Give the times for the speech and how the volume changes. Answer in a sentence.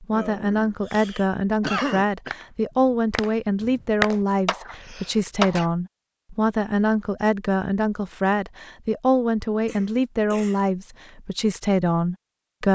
You can hear the speech from 0.0 to 12.7 s, at a steady volume.